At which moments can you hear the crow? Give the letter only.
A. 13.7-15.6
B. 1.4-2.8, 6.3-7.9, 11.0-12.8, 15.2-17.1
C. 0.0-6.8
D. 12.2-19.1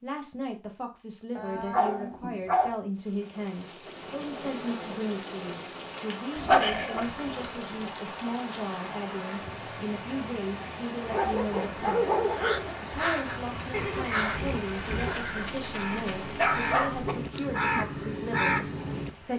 D.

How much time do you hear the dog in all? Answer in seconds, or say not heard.
7 s.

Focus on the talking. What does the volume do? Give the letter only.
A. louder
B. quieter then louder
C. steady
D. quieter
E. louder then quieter
C.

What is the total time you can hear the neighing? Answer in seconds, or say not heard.
2 s.